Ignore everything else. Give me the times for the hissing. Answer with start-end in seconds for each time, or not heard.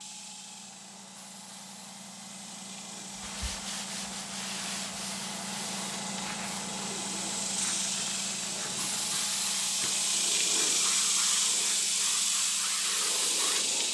0.0-13.9.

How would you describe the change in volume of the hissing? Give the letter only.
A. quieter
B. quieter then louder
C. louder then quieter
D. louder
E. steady
D.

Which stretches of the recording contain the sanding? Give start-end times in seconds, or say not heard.
3.1-10.1.